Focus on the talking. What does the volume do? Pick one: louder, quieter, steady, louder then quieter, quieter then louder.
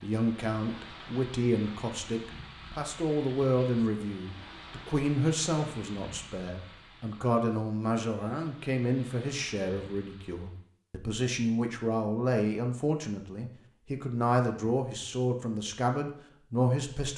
steady.